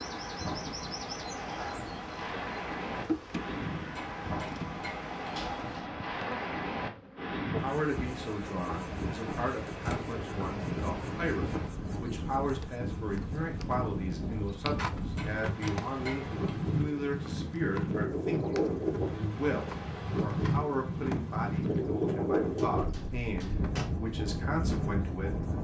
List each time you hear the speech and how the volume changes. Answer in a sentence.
The speech can be heard from 7.6 to 25.5 s, at a steady volume.